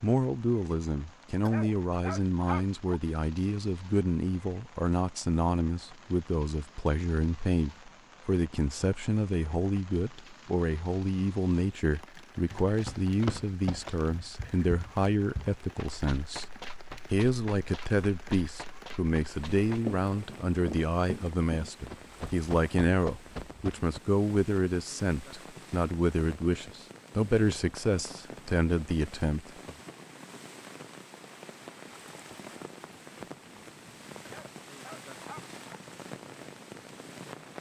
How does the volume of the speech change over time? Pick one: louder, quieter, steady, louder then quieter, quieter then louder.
steady.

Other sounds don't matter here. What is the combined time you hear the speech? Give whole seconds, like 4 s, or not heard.
29 s.